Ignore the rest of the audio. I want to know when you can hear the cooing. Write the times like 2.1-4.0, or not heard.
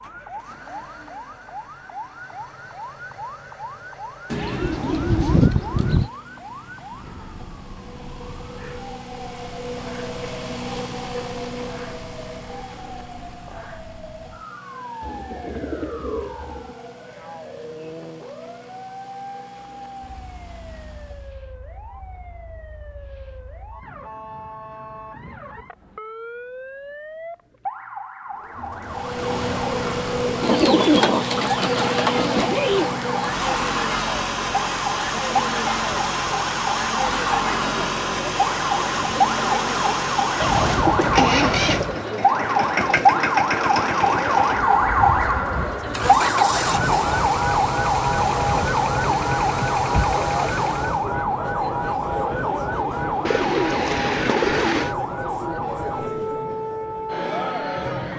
4.3-6.1, 15.0-16.8, 30.4-32.9, 40.4-42.0, 53.2-55.0.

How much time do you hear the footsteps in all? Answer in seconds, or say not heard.
not heard.